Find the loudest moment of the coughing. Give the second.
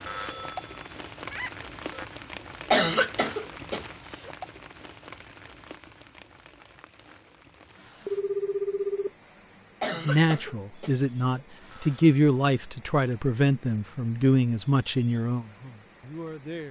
3 s.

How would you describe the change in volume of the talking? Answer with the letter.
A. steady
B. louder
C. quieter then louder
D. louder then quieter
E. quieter
D.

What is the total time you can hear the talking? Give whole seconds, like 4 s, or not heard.
7 s.